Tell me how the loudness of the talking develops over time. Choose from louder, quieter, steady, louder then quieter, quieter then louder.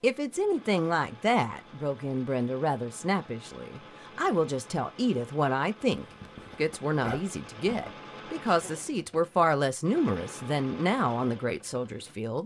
steady.